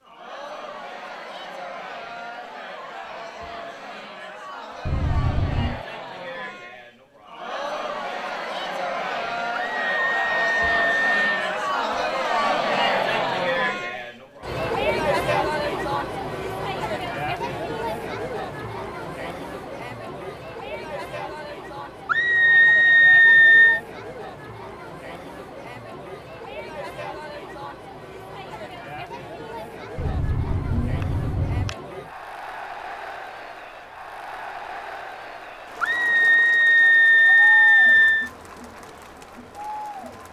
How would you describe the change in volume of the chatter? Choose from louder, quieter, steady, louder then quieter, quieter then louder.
louder then quieter.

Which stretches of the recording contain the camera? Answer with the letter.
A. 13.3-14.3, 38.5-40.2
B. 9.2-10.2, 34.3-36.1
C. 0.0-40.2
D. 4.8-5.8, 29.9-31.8
D.